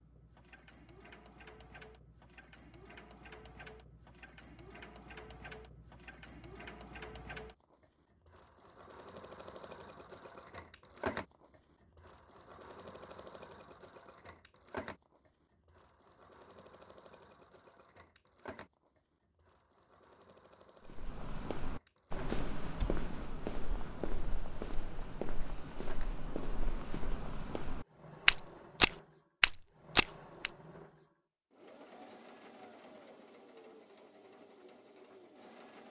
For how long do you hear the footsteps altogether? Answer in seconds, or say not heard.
10 s.